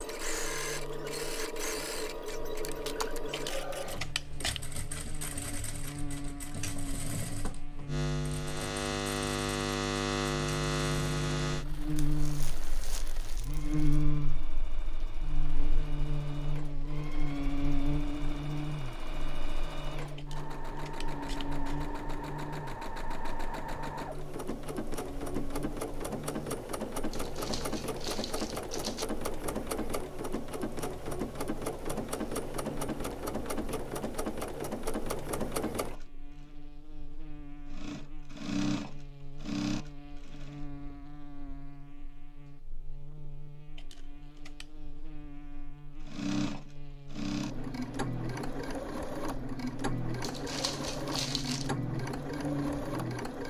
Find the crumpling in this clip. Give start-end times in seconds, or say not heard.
11.9-14.1, 27.1-29.1, 50.2-51.7.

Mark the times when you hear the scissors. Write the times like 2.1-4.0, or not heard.
3.3-4.6, 20.1-21.9, 43.8-44.7.